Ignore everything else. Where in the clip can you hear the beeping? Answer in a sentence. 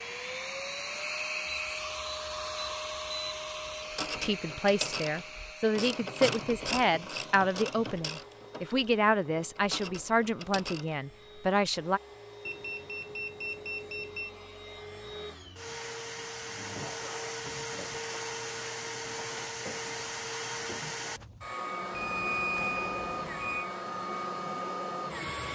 You can hear the beeping from 1.4 to 3.9 s, from 12.4 to 14.3 s and from 21.9 to 23.6 s.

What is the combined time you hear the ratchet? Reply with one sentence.
The ratchet can be heard for 7 seconds in total.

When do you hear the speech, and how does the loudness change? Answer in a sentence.
You can hear the speech from 4.2 to 12.0 s, at a steady volume.